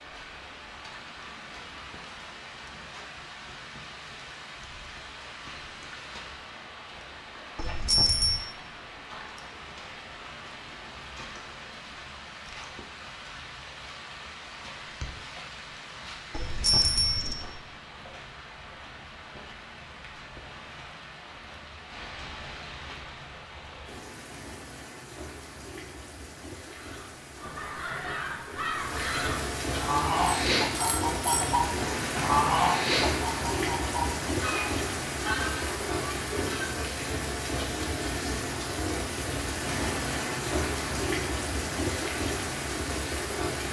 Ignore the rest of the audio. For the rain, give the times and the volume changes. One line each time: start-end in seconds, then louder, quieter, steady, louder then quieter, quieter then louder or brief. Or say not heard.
0.0-43.6 louder.